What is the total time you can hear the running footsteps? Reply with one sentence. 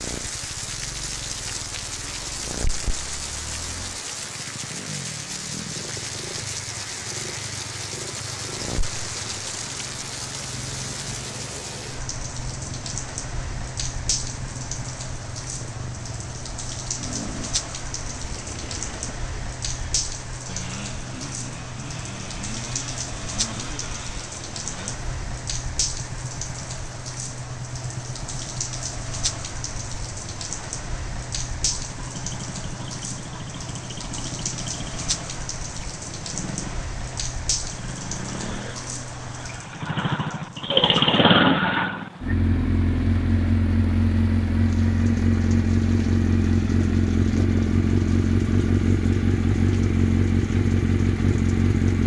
The running footsteps can't be heard in this clip.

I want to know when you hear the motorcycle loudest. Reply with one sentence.
The volume of the motorcycle peaks at 41 seconds.